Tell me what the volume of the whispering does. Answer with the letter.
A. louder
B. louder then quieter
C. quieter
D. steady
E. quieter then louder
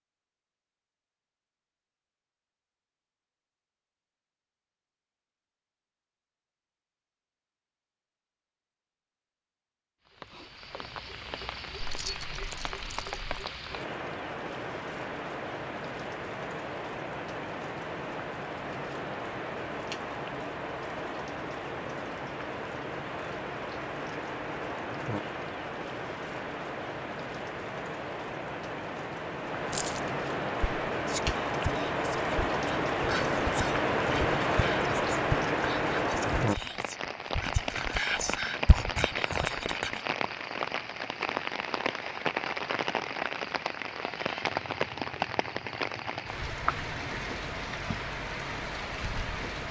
A.